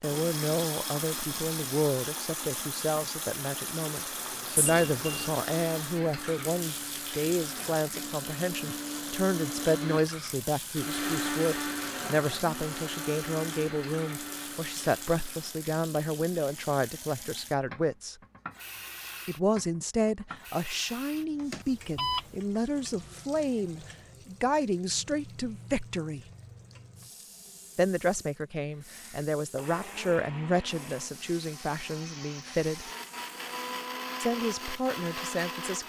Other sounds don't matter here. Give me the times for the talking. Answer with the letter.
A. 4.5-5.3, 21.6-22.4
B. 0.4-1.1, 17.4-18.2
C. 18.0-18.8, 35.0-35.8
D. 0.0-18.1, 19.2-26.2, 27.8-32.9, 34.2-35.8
D.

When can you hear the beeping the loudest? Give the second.
22 s.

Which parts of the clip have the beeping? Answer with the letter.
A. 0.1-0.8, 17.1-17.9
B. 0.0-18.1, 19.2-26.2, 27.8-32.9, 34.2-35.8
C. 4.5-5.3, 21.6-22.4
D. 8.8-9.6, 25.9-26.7
C.